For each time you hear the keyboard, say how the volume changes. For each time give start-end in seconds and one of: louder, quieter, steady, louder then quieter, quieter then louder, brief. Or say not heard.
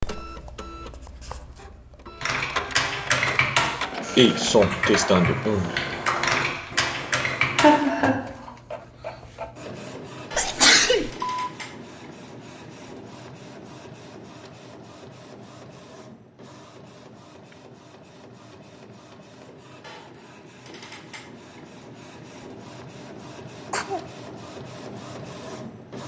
2.2-7.8 steady.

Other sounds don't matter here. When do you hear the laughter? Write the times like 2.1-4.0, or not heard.
7.5-8.2.